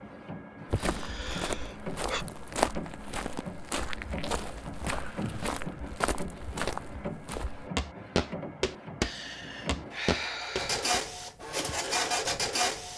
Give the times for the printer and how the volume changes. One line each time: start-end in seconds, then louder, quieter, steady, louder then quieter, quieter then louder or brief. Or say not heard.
0.0-12.9 louder.